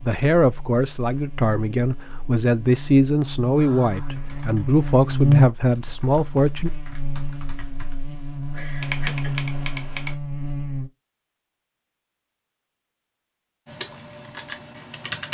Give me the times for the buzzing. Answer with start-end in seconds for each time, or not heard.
0.0-10.9.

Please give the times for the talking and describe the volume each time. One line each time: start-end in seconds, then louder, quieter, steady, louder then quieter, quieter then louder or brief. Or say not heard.
0.0-6.7 steady.